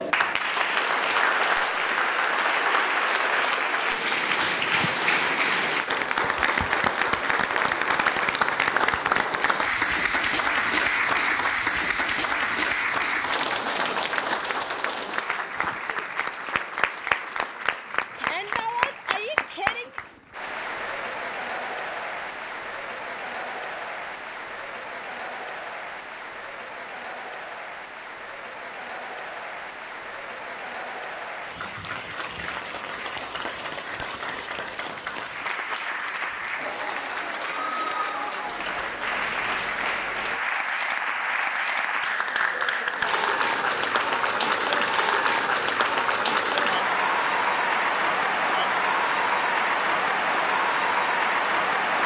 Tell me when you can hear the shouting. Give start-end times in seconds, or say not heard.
18.1-20.0.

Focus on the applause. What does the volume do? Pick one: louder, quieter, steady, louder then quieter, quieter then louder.
quieter then louder.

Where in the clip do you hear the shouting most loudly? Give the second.
19 s.